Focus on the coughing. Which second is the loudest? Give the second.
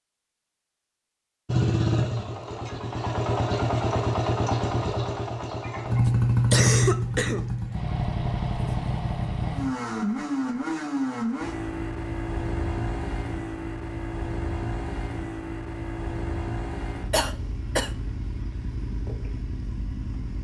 7 s.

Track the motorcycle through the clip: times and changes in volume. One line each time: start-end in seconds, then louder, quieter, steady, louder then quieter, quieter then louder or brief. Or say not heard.
1.4-20.3 quieter.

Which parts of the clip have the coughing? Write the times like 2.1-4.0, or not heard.
6.0-7.5, 17.1-17.9.